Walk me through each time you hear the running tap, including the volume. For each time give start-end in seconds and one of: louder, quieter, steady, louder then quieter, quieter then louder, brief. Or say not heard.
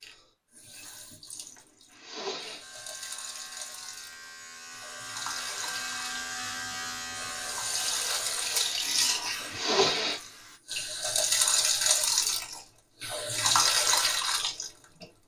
0.0-15.1 louder.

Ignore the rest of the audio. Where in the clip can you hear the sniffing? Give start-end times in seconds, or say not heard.
1.4-2.6, 8.9-10.2.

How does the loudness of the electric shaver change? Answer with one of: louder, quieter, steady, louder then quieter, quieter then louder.
louder then quieter.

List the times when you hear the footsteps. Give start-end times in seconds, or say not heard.
not heard.